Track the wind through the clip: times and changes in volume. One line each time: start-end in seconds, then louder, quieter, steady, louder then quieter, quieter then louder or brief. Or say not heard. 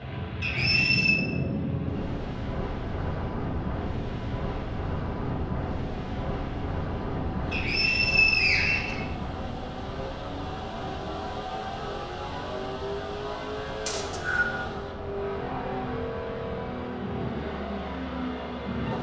0.0-18.9 quieter.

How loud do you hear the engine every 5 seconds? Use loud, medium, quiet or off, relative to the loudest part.
medium, medium, loud, loud.